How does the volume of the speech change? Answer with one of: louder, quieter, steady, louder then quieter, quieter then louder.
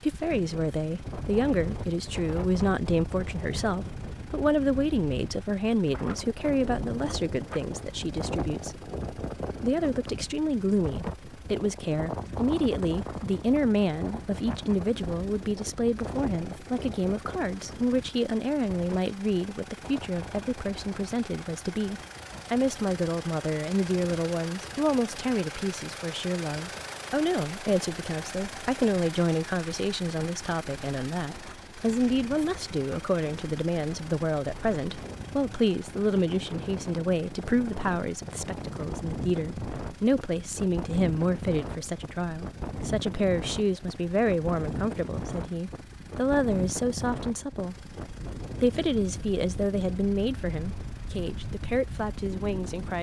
steady.